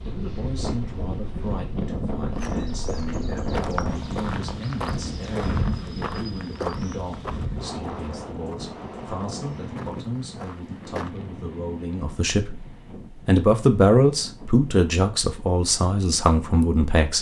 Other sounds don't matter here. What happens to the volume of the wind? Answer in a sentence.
The loudness of the wind goes down.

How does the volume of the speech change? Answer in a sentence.
The volume of the speech goes up.